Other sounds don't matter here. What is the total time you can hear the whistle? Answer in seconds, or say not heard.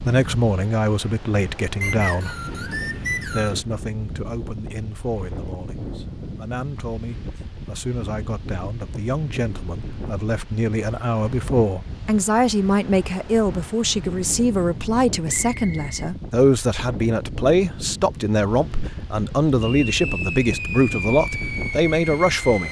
2 s.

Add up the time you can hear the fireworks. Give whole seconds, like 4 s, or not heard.
3 s.